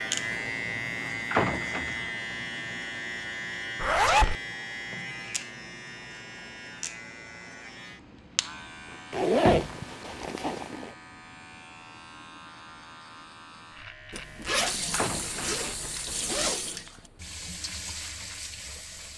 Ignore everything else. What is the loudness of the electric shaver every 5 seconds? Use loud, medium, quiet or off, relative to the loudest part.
loud, medium, quiet, quiet.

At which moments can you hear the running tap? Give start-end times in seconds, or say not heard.
14.7-19.1.